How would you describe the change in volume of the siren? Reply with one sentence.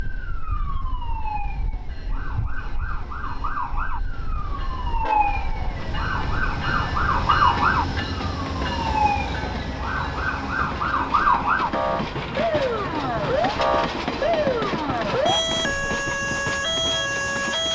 The loudness of the siren goes up.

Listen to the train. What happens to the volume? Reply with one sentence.
The volume of the train goes up.